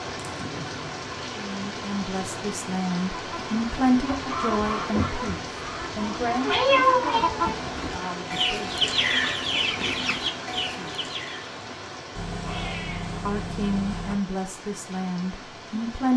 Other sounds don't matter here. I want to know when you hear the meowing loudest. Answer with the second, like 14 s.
7 s.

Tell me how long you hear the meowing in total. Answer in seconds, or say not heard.
4 s.